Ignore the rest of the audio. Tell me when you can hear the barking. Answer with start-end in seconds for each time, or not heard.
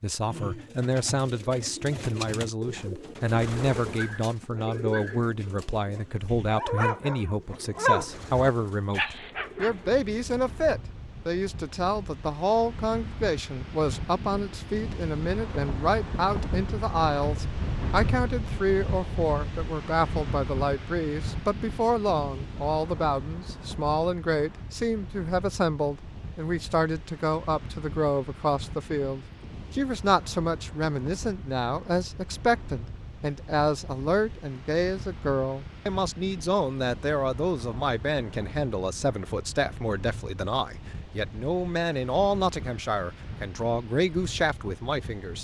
3.9-10.0.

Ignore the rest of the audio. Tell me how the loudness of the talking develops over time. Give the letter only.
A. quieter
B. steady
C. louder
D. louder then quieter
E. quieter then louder
B.